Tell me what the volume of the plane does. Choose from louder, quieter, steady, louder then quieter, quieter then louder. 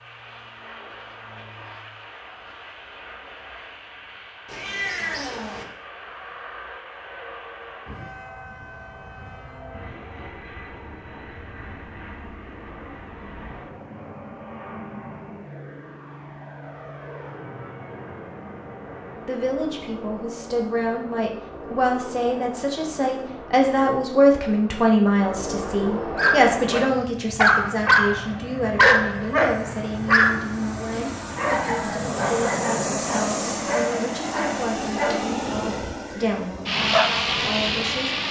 louder.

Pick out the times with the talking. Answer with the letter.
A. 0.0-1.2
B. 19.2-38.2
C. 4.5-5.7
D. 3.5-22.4
B.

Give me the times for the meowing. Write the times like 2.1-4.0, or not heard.
4.5-5.7.